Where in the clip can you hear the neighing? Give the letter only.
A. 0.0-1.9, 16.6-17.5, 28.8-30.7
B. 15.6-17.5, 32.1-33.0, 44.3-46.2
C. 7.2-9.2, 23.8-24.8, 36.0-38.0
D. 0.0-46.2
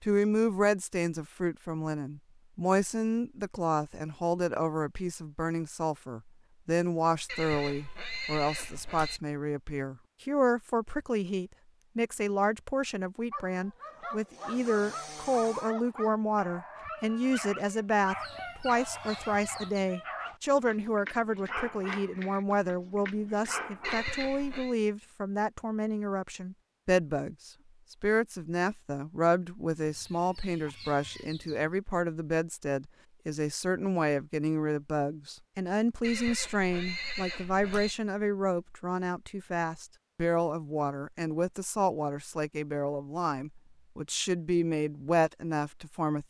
C.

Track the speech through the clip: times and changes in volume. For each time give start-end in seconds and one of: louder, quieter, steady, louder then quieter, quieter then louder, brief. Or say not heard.
0.0-46.2 steady.